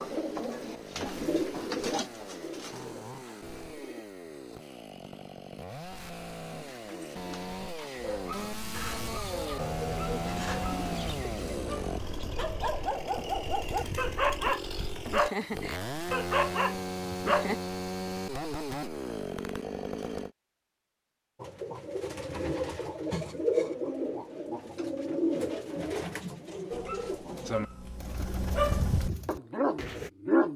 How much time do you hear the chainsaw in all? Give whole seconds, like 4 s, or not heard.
20 s.